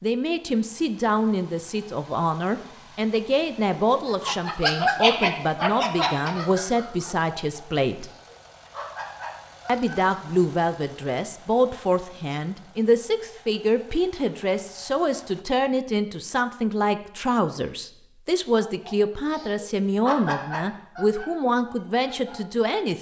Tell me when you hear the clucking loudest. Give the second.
5 s.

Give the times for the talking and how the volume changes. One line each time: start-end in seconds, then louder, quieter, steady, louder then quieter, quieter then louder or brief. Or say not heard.
0.0-8.1 steady
9.7-22.9 steady.